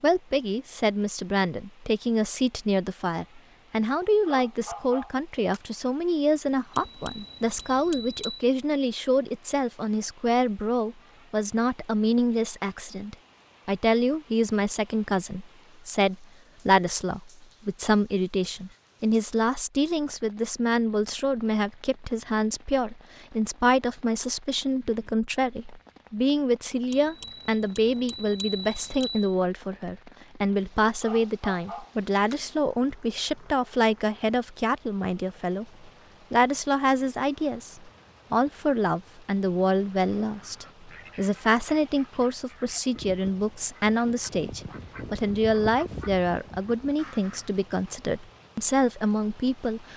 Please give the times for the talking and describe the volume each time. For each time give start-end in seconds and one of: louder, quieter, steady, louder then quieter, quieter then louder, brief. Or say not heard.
0.0-49.9 steady.